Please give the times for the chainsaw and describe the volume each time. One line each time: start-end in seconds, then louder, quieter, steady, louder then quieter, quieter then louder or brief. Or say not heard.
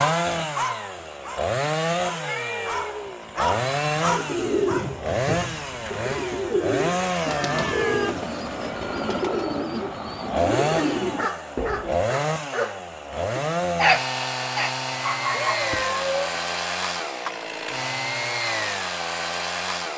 0.0-19.9 steady.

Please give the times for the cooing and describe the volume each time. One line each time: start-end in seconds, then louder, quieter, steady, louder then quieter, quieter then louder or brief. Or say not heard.
3.9-12.1 steady.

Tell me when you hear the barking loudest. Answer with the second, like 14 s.
14 s.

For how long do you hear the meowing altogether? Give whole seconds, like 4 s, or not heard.
3 s.